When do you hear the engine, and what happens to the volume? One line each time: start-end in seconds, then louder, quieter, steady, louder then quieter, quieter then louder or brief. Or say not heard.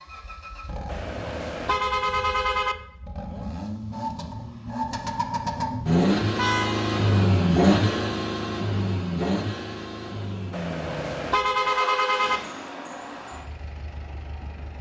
0.0-14.7 louder then quieter.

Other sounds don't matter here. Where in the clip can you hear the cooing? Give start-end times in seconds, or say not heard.
not heard.